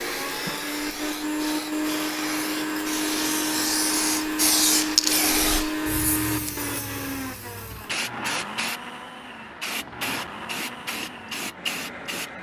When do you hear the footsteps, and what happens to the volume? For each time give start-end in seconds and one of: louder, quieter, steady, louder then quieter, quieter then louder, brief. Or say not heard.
not heard.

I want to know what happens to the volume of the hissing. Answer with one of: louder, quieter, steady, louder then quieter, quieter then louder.
louder then quieter.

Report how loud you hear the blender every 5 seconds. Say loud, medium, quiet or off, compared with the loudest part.
loud, loud, medium.